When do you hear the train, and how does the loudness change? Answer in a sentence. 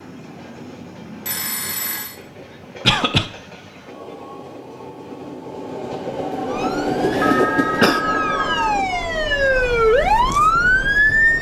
You can hear the train from 0.0 to 11.3 s, getting louder then quieter.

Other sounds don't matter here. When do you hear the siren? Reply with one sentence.
You can hear the siren from 6.5 to 11.3 s.